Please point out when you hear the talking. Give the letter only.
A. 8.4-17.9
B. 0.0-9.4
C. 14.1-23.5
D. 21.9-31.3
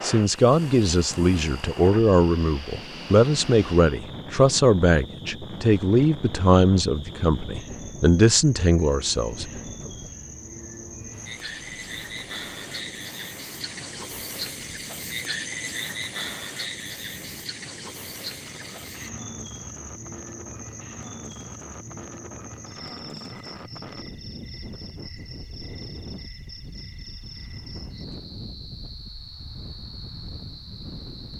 B.